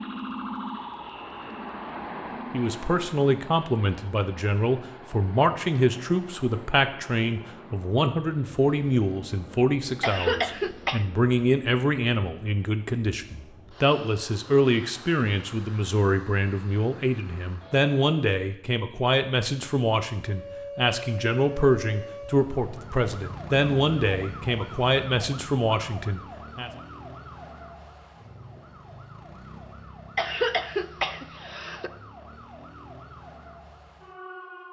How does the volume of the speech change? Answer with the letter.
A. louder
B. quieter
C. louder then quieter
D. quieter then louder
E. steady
E.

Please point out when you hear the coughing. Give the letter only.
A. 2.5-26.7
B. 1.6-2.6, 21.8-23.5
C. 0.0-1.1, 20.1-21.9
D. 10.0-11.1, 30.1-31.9
D.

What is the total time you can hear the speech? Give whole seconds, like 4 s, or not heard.
24 s.